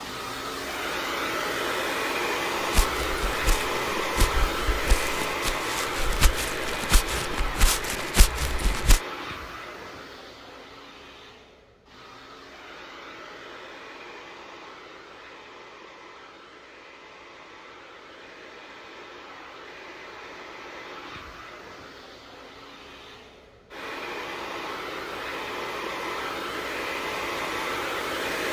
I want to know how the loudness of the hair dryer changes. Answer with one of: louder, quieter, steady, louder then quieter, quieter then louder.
quieter then louder.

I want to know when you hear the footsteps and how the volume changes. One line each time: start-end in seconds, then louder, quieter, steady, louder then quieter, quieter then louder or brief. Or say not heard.
2.6-9.0 louder.